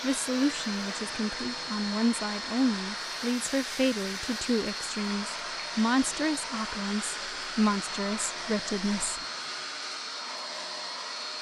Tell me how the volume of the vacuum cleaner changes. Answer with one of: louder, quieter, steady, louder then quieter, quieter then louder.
steady.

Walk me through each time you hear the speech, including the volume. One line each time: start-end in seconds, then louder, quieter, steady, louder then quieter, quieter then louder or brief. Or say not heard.
0.0-9.2 steady.